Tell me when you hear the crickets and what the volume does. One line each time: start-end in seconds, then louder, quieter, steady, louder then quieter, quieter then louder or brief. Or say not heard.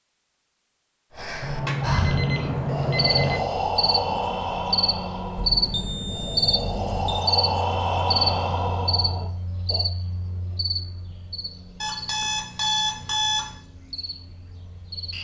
3.0-15.1 quieter.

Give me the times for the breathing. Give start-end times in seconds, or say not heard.
1.1-9.8.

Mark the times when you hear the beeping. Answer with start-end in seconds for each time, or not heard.
1.4-3.4, 5.3-7.2, 11.8-13.6.